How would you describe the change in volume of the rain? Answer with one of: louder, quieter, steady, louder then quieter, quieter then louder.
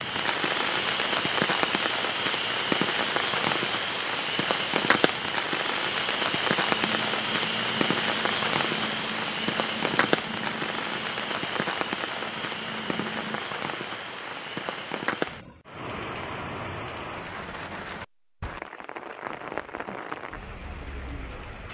quieter.